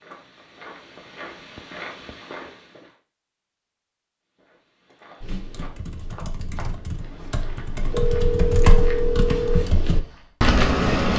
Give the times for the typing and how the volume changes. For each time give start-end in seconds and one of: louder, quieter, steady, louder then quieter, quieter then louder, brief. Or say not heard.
5.2-11.1 louder.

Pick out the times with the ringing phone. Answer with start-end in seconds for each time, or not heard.
1.6-2.1, 7.8-9.7.